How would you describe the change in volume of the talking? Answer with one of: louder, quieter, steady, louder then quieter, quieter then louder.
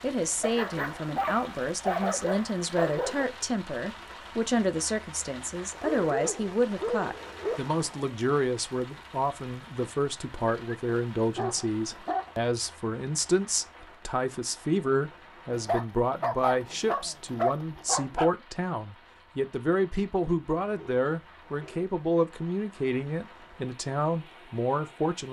steady.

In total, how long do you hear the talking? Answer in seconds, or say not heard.
25 s.